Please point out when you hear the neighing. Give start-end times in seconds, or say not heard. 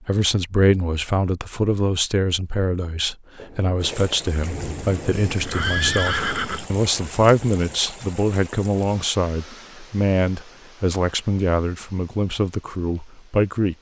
5.3-6.7.